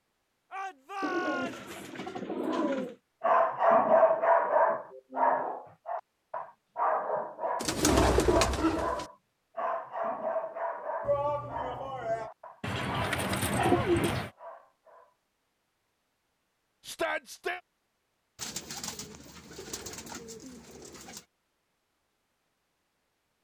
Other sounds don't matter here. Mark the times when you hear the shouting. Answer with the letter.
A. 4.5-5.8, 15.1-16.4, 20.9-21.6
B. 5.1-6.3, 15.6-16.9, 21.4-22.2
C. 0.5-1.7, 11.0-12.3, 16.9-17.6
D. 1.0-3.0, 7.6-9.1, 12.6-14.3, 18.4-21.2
C.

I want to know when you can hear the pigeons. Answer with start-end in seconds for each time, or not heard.
1.0-3.0, 7.6-9.1, 12.6-14.3, 18.4-21.2.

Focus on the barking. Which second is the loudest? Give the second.
4 s.